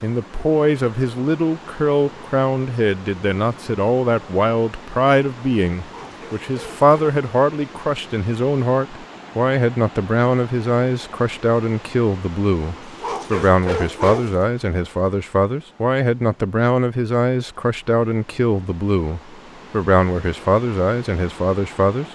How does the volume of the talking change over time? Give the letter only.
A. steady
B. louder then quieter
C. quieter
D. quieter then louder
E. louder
A.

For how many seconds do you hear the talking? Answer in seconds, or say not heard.
22 s.